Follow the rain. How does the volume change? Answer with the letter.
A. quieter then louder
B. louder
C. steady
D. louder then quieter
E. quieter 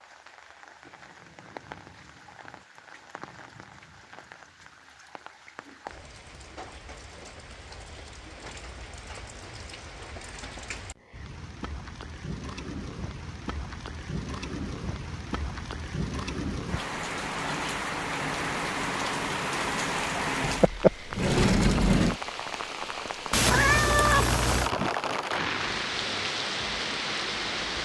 B.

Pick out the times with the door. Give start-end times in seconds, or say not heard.
20.4-22.2.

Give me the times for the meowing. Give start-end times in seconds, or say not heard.
23.3-24.7.